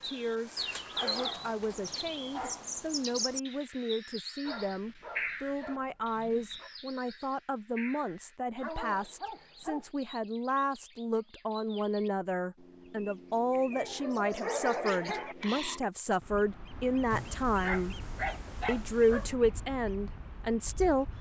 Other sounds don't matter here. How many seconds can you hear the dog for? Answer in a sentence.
You can hear the dog for 10 seconds altogether.